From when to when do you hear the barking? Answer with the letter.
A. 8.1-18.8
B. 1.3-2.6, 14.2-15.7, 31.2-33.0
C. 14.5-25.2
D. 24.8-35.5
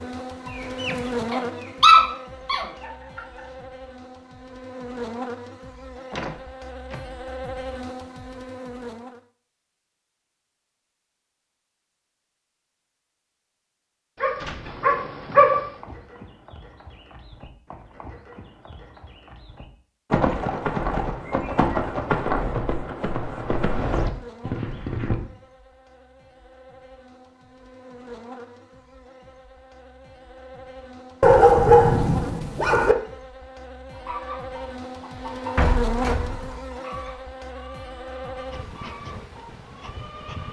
B.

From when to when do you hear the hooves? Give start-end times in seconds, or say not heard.
14.5-25.2.